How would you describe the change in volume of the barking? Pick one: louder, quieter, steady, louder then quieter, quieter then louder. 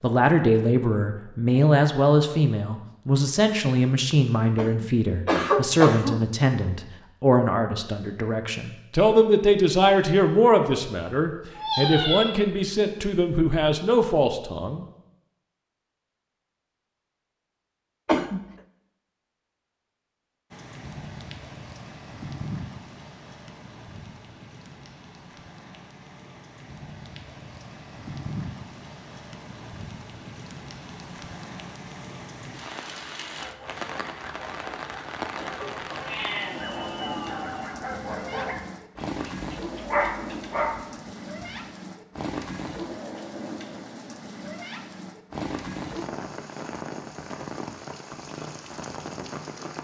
louder.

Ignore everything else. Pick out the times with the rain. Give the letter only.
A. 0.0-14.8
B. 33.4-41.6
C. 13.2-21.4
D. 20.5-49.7
D.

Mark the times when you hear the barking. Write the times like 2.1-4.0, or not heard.
33.4-41.6.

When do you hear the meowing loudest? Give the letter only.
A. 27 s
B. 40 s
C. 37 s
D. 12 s
D.